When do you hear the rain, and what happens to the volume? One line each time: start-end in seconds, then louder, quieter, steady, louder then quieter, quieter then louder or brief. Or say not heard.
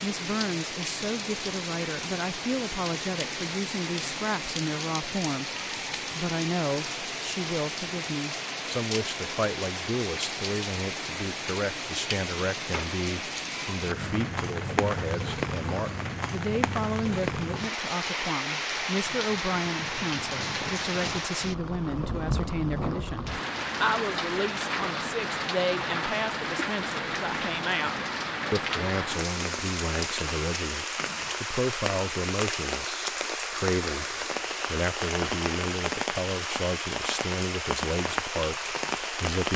0.0-39.5 steady.